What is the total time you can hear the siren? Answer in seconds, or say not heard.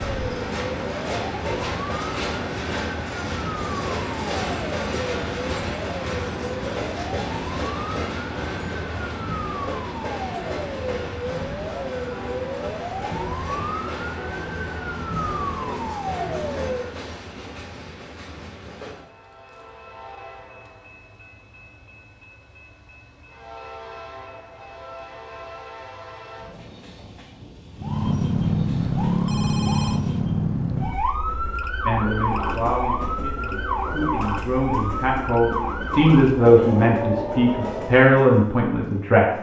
27 s.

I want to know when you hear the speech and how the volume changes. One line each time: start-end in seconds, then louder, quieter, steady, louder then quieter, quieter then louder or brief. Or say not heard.
31.9-39.2 louder.